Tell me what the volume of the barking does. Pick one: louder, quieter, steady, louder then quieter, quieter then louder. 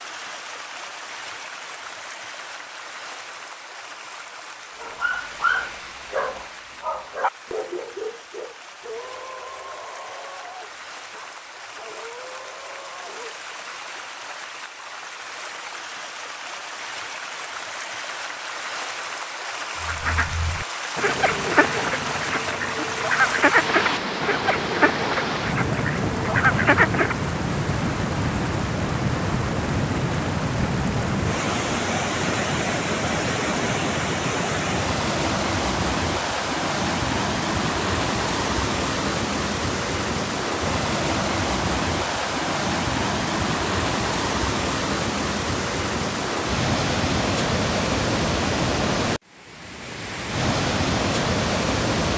quieter.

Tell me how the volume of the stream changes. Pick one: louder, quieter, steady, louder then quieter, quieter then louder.
louder.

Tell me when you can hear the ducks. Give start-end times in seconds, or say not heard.
19.8-27.1.